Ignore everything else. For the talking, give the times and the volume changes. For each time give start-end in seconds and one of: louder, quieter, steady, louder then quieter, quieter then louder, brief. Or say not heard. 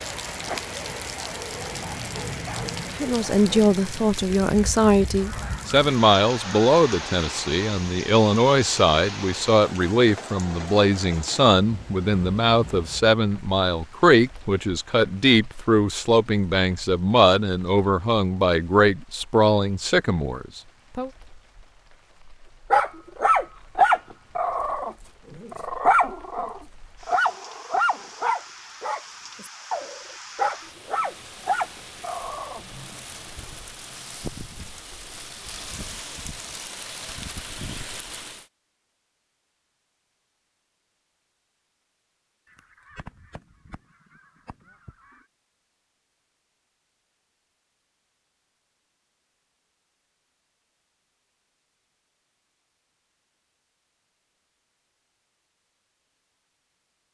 3.0-21.1 steady.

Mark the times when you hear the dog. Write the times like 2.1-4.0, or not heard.
0.0-3.6, 22.7-32.6.